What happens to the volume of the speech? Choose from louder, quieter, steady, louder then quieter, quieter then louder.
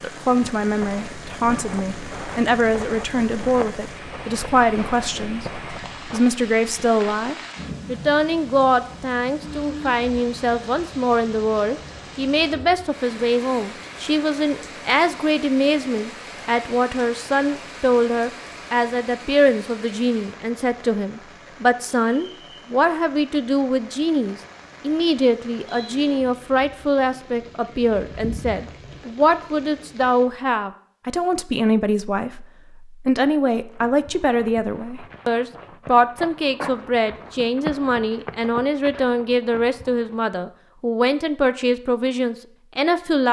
steady.